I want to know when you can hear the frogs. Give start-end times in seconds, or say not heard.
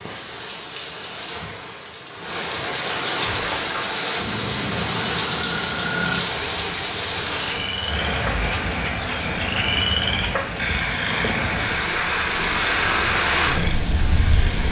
3.2-14.6.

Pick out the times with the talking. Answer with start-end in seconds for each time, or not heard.
not heard.